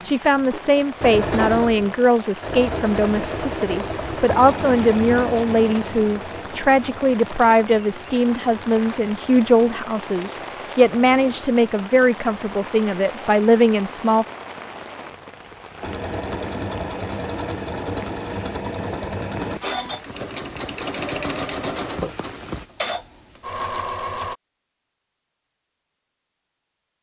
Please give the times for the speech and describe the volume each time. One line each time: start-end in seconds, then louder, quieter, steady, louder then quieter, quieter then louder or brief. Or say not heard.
0.0-14.2 steady.